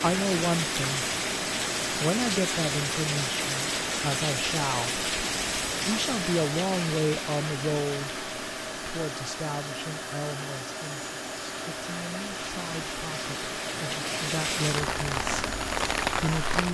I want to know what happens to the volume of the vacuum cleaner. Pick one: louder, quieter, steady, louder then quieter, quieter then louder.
steady.